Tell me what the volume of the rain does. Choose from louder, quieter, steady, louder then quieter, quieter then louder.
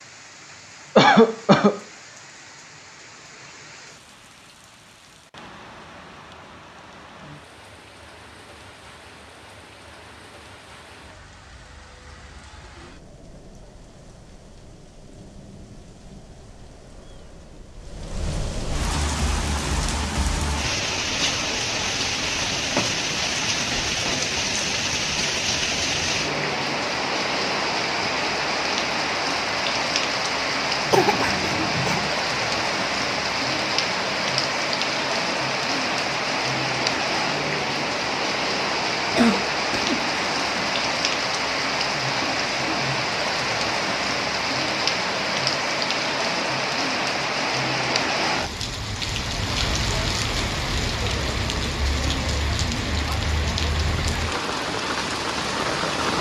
louder.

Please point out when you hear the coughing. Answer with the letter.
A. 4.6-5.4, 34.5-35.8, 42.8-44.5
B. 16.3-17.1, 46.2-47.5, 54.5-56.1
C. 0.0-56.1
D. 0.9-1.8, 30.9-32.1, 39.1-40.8
D.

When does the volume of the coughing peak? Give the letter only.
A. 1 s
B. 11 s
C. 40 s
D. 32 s
A.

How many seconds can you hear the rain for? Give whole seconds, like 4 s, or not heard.
56 s.